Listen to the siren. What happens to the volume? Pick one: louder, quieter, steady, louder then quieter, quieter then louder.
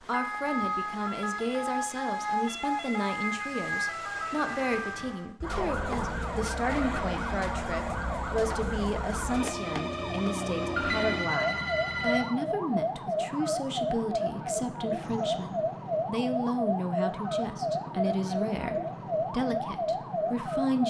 steady.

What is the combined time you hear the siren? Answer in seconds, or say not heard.
21 s.